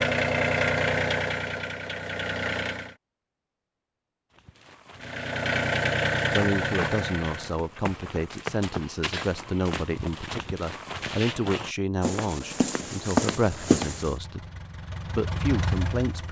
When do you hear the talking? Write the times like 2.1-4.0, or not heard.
6.3-14.4, 15.1-16.2.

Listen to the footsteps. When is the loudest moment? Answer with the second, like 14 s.
13 s.